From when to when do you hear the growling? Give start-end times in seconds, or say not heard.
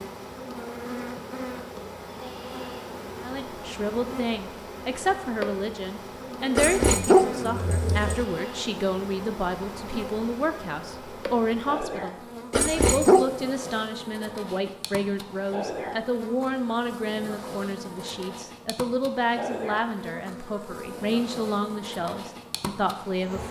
6.5-8.2, 12.5-13.3.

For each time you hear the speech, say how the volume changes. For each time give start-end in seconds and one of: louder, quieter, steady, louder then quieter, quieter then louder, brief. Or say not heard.
3.2-23.4 steady.